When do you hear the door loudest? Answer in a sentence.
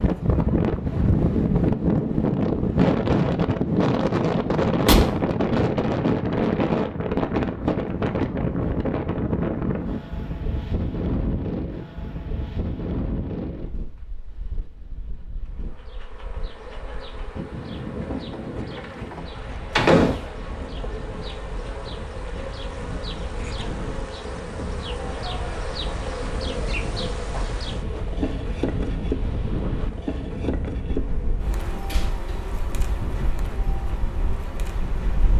The loudest moment of the door is at 20 seconds.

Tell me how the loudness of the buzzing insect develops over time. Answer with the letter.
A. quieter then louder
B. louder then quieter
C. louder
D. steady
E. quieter
B.